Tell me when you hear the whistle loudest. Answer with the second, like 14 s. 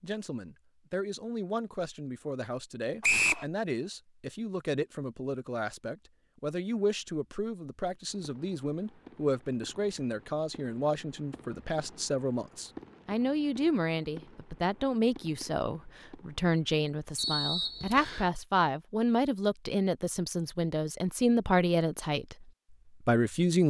3 s.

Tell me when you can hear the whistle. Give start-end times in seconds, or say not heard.
3.0-3.5, 17.1-18.3.